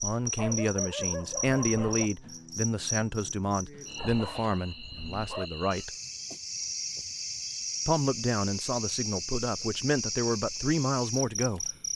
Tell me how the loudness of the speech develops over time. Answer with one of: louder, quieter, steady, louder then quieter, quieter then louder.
steady.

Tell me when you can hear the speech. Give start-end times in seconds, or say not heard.
0.0-5.9, 7.8-11.7.